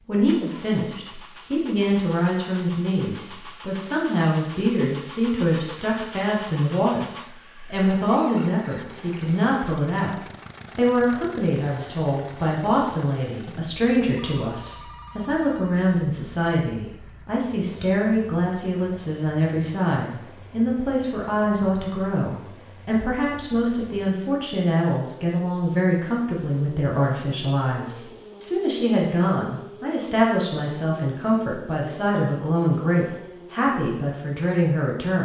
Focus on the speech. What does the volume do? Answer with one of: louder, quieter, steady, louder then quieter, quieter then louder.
steady.